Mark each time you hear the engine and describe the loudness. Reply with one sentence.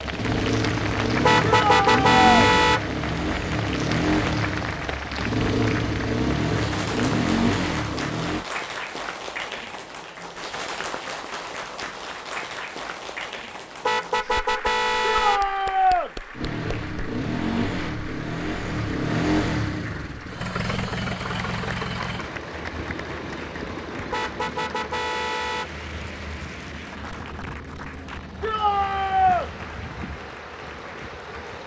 You can hear the engine from 0.0 to 8.4 s, at a steady volume; and from 16.3 to 31.6 s, getting quieter.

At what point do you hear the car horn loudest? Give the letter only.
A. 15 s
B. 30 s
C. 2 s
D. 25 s
C.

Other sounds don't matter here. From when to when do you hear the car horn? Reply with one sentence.
You can hear the car horn from 1.2 to 2.8 s, from 13.8 to 15.4 s and from 24.1 to 25.7 s.